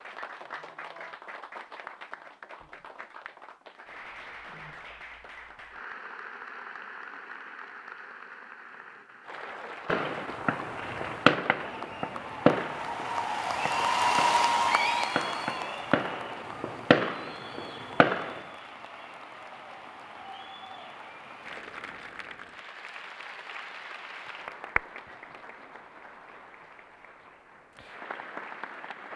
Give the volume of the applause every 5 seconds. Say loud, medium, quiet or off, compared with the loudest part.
quiet, quiet, loud, medium, medium, quiet.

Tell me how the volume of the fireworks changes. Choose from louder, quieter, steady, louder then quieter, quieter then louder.
quieter then louder.